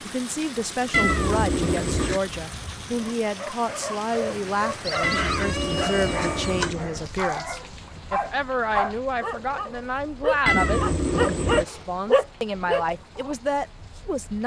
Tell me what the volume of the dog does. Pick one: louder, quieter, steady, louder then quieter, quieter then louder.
louder.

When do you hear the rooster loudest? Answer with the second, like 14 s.
5 s.